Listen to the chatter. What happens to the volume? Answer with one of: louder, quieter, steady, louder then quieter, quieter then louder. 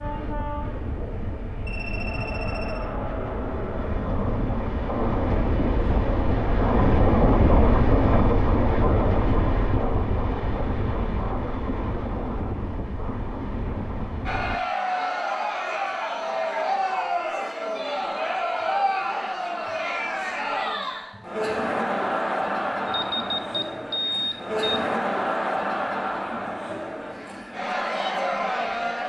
steady.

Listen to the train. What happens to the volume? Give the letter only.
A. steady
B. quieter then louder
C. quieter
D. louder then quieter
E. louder
D.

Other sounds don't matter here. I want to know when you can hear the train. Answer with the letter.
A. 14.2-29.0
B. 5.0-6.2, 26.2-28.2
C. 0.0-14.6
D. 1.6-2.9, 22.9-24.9
C.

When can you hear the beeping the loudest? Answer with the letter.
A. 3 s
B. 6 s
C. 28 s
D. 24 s
D.